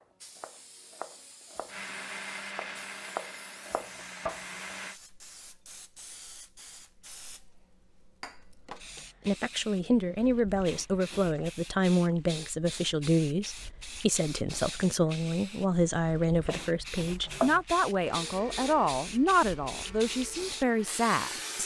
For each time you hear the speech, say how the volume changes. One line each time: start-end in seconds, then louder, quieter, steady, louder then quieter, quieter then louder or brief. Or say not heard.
9.2-21.4 steady.